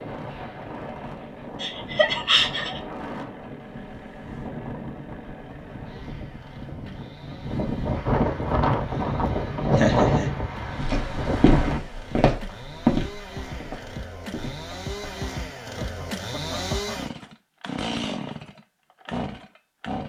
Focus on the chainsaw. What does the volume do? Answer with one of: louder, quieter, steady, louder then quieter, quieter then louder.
louder.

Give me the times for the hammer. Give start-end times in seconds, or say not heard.
not heard.